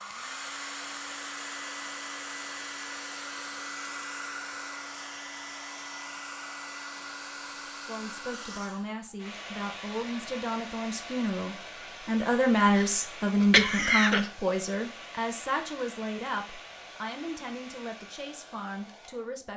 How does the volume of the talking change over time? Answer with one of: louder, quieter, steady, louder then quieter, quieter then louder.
louder then quieter.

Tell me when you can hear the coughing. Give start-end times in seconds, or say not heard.
12.8-14.3.